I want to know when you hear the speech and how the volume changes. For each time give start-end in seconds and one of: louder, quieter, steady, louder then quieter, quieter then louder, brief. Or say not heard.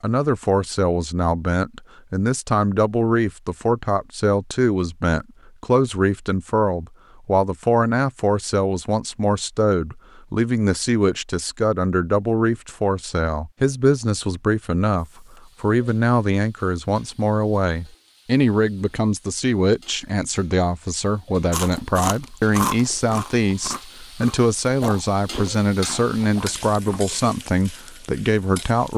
0.0-28.9 steady.